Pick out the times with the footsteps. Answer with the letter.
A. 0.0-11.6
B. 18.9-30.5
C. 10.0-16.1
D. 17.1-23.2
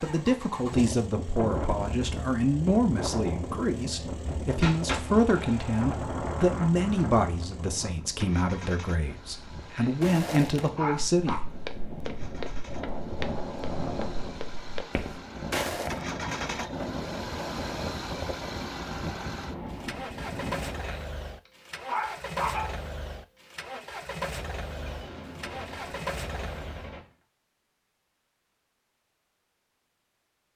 C.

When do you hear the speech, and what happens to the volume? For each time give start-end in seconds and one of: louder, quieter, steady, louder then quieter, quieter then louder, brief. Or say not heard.
0.0-11.6 steady.